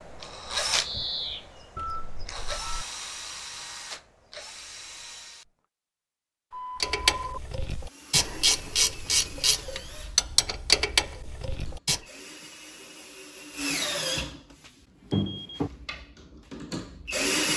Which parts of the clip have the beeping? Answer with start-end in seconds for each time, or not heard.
1.8-2.9, 6.5-7.4, 14.6-15.6.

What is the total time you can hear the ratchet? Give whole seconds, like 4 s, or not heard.
5 s.